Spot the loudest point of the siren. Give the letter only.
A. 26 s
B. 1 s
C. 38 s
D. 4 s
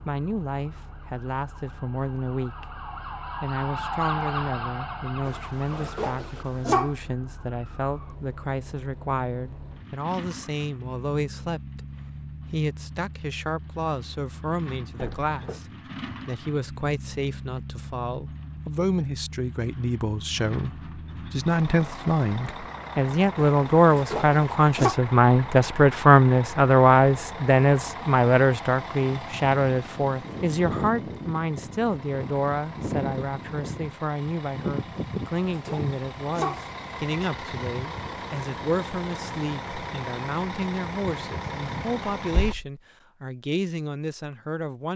D.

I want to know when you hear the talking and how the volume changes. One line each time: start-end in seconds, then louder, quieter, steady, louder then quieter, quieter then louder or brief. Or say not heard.
0.1-15.7 steady
16.2-44.9 louder then quieter.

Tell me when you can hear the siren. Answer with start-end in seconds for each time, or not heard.
0.0-8.2.